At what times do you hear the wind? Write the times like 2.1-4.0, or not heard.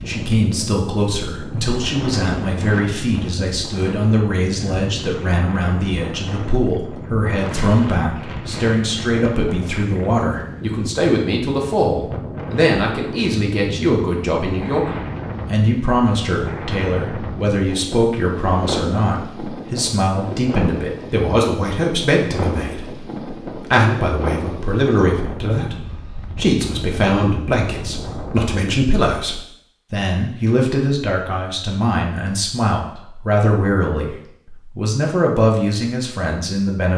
0.0-28.7.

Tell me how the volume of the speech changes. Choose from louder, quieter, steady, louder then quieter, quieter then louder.
steady.